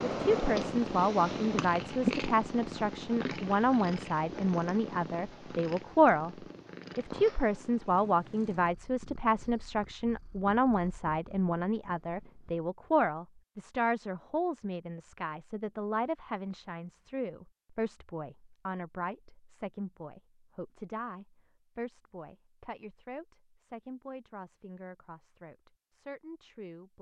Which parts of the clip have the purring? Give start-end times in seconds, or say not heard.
0.0-12.7.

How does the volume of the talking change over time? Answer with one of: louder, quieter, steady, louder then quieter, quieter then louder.
quieter.